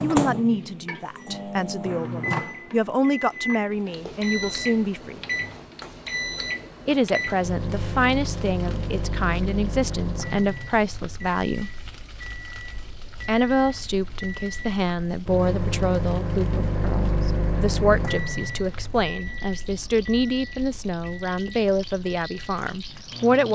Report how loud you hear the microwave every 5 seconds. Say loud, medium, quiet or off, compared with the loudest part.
loud, loud, medium, loud, quiet.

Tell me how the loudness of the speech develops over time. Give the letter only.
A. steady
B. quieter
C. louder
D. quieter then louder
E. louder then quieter
A.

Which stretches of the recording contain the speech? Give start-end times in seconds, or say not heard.
0.0-5.2, 6.8-11.7, 13.2-23.4.